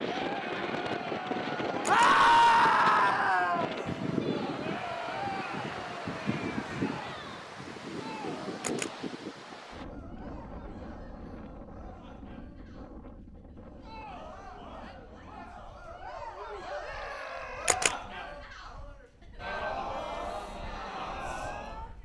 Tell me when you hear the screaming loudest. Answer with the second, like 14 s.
2 s.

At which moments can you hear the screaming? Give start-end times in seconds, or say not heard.
1.9-3.6, 16.8-17.9.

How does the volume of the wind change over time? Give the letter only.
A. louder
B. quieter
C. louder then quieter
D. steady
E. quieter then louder
B.